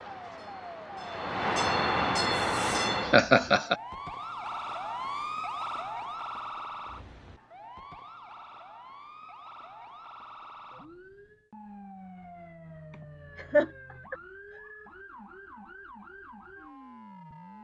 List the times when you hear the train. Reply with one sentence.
You can hear the train from 0.0 to 3.2 s.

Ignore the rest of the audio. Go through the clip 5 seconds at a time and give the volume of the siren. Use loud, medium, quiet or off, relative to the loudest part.
loud, loud, medium, medium.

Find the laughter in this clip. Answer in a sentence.
The laughter can be heard from 3.0 to 3.8 s and from 12.9 to 14.2 s.